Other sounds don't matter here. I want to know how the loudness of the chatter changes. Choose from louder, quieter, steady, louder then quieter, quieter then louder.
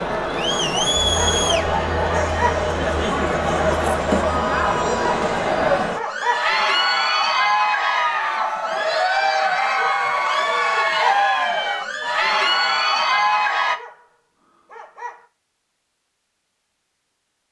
steady.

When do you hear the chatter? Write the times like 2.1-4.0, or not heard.
0.0-13.8.